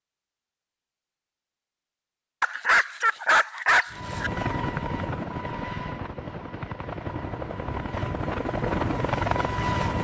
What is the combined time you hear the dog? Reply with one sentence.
The dog can be heard for 2 seconds in total.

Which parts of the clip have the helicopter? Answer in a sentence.
The helicopter can be heard from 3.9 to 9.9 s.